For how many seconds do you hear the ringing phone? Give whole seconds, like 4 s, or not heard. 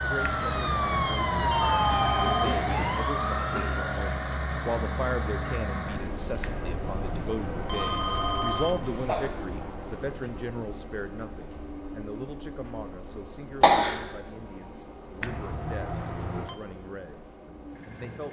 6 s.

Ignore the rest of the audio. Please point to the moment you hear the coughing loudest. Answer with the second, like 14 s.
14 s.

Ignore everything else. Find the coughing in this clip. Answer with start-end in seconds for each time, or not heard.
1.9-3.8, 8.8-10.2, 13.6-14.0.